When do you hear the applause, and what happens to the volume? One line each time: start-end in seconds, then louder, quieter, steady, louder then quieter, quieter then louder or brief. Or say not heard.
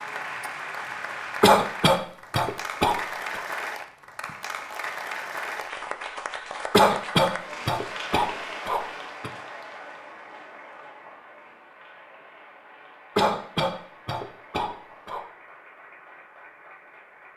0.0-17.3 quieter.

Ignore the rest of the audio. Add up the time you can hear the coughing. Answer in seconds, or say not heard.
7 s.